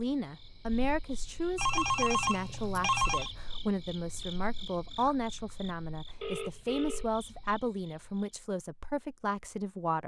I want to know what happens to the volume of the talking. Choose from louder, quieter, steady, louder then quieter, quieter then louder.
steady.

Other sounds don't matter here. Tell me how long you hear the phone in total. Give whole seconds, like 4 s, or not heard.
3 s.